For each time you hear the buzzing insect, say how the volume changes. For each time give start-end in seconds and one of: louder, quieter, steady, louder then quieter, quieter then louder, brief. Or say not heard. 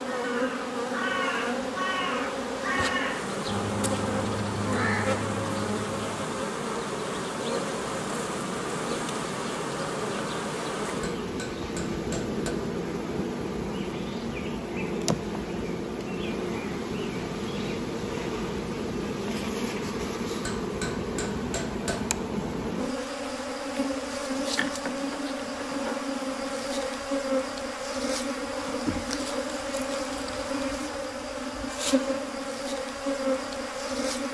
0.0-34.2 steady.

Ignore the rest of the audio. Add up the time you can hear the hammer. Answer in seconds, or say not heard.
3 s.